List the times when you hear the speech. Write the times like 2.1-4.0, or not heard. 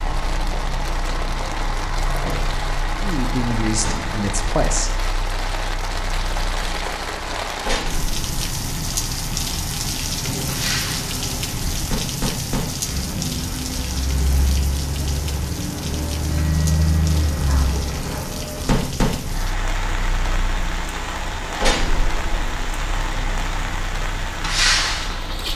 3.0-4.9.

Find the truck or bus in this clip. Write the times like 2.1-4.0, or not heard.
0.0-25.5.